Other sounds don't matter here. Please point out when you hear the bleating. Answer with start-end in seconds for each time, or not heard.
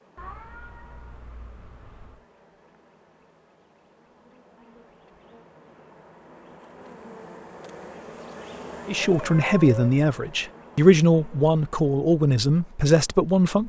not heard.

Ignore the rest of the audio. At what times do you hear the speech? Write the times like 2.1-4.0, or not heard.
8.8-13.6.